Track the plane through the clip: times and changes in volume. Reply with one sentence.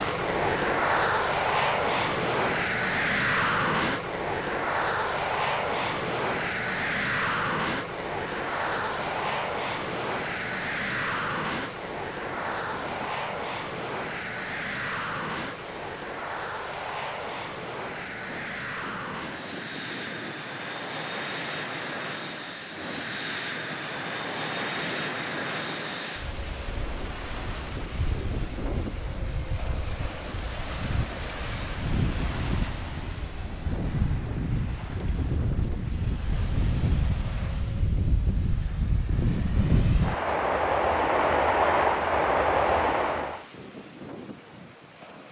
You can hear the plane from 0.0 to 43.5 s, getting quieter then louder.